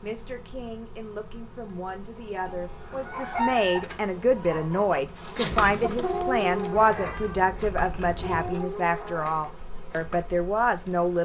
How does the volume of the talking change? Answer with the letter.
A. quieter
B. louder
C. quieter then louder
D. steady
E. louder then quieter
B.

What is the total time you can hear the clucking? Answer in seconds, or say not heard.
8 s.